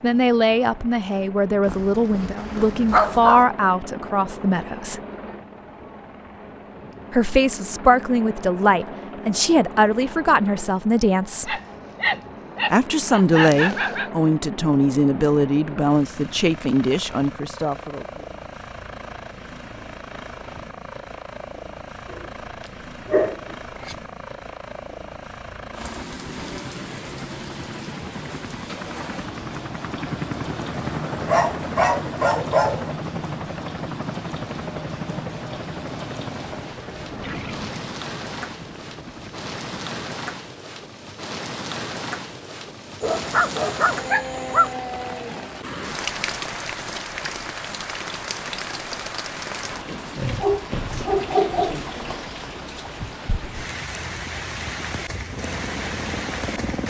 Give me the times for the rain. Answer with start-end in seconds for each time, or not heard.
25.7-56.8.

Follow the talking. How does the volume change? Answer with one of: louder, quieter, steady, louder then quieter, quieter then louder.
steady.